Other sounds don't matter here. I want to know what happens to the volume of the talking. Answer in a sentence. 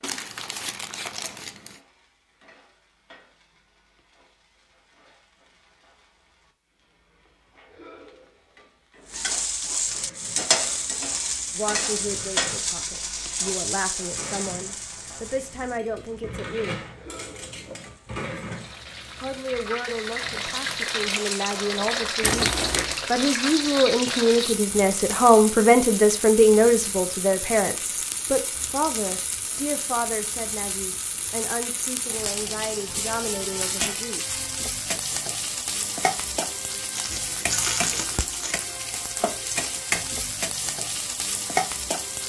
The volume of the talking goes up, then down.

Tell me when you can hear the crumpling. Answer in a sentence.
You can hear the crumpling from 0.0 to 1.8 s, from 22.2 to 23.0 s and from 37.0 to 38.5 s.